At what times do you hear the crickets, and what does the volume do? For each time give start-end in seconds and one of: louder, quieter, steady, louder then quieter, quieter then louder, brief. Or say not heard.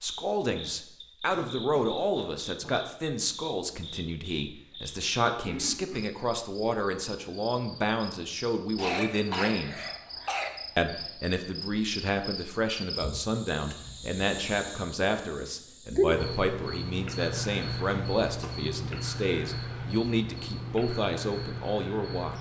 0.0-22.3 louder.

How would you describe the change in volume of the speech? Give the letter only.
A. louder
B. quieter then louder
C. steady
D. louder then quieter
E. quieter
C.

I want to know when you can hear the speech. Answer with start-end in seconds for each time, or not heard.
0.0-9.8, 10.8-22.3.